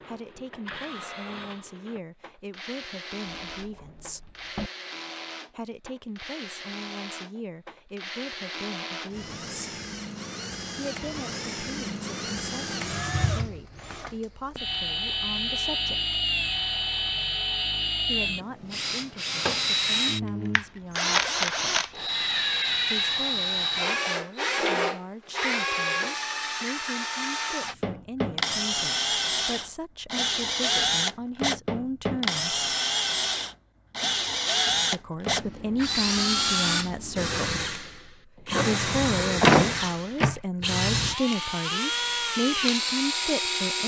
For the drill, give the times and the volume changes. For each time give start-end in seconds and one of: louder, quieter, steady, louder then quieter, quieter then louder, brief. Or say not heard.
0.0-43.8 louder.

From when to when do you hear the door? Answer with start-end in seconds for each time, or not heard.
3.2-4.7, 39.4-40.4.